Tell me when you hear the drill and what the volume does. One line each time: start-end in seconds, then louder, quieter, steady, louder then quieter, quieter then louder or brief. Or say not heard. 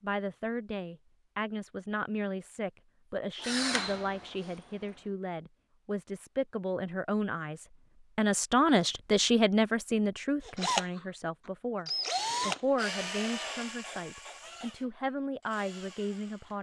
3.4-5.1 brief
10.4-16.5 louder then quieter.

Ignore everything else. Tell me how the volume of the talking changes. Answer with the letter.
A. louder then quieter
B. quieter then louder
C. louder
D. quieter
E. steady
A.